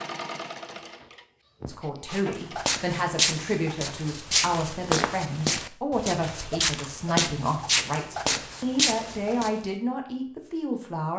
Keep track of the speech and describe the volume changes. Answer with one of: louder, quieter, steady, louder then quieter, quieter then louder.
steady.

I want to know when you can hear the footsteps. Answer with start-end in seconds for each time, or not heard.
2.0-9.6.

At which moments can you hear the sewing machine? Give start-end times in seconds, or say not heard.
0.0-2.8.